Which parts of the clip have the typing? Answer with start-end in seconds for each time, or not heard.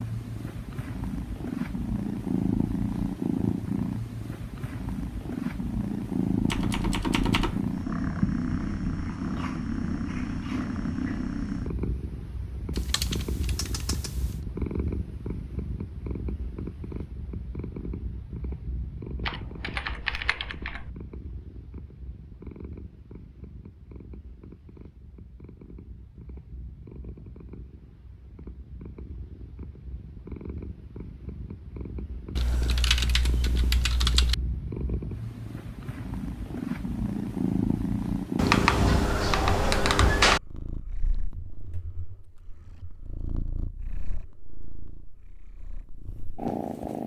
6.5-7.6, 12.8-14.3, 19.2-20.9, 32.4-34.4, 38.4-40.4.